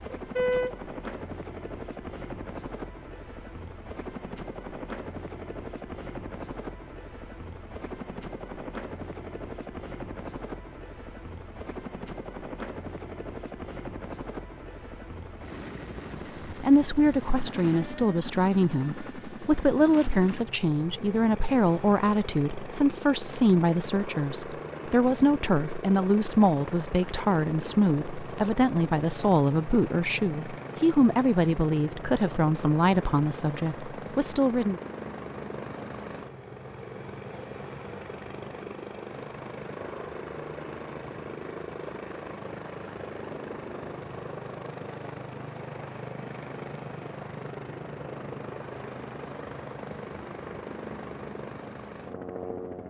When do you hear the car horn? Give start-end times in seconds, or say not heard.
0.1-0.8.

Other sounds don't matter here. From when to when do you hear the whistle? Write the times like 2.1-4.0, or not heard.
not heard.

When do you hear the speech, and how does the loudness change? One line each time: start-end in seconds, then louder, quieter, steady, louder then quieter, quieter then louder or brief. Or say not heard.
16.1-34.8 steady.